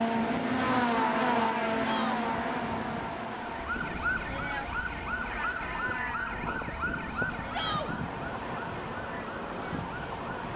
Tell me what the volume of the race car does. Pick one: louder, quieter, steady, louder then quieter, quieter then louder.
quieter.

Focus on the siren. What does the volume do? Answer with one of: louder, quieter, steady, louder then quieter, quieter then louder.
quieter.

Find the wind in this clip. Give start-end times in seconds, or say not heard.
0.0-10.5.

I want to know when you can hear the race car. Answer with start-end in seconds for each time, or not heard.
0.0-10.5.